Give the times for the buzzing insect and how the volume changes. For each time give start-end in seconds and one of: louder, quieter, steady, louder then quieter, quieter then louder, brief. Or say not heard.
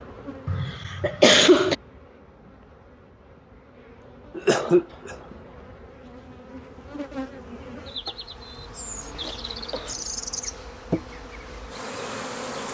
0.0-12.6 louder.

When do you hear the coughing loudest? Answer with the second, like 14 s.
1 s.